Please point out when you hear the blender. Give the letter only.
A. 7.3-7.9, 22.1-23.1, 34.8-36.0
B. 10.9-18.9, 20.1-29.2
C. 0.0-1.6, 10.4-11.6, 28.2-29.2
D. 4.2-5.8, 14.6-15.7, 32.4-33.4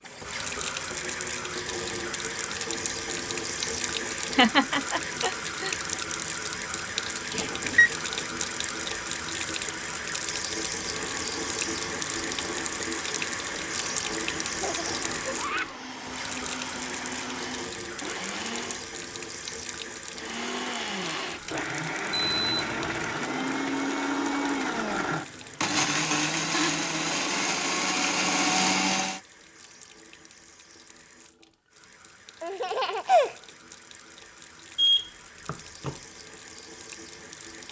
B.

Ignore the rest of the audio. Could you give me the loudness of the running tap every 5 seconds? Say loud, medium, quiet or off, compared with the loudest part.
loud, loud, loud, medium, medium, quiet, quiet, quiet.